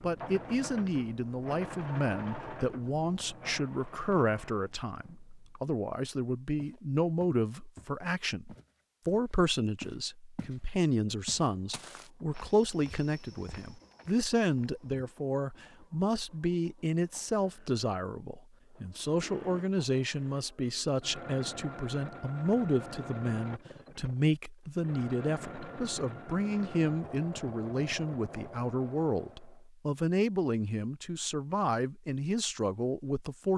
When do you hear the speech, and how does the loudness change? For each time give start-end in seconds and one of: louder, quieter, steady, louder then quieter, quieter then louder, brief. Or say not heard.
0.0-33.5 steady.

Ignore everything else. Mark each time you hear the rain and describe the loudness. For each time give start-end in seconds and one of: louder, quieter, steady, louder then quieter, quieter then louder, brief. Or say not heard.
not heard.